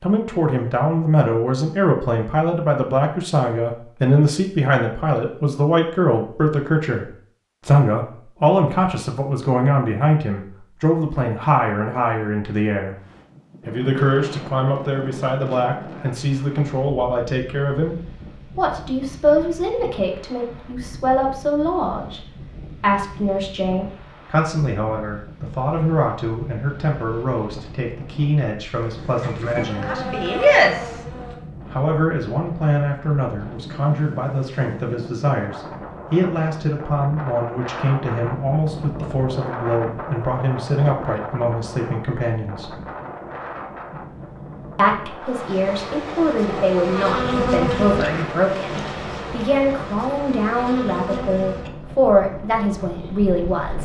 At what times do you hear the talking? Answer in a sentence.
You can hear the talking from 0.0 to 12.9 s, from 13.7 to 17.9 s, from 18.6 to 30.1 s, from 31.7 to 42.8 s and from 44.8 to 53.8 s.